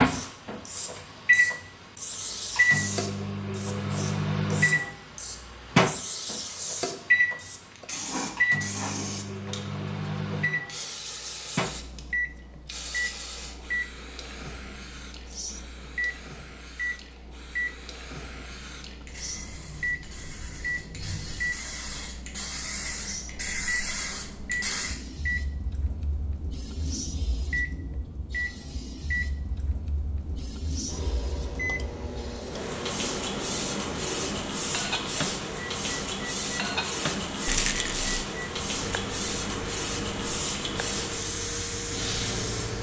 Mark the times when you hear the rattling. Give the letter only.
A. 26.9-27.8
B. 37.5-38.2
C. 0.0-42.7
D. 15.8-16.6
B.